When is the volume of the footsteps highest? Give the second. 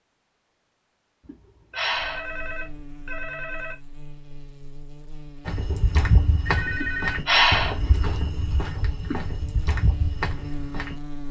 6 s.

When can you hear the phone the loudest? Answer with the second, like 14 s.
7 s.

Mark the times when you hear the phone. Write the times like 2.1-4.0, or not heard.
1.7-3.8, 5.7-7.2.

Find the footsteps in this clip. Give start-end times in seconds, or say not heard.
5.5-10.9.